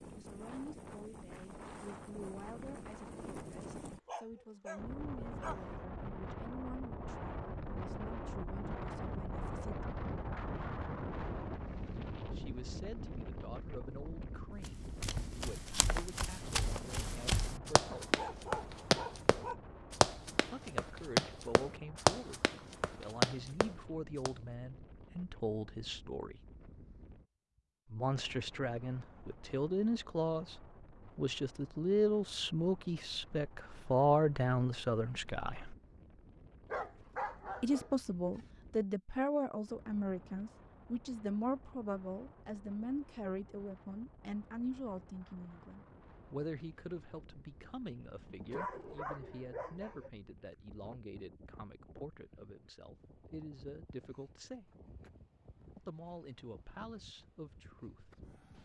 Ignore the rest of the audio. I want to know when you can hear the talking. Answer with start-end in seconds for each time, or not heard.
0.1-9.8, 12.3-18.2, 20.5-26.4, 27.9-35.8, 37.6-54.7, 55.8-58.2.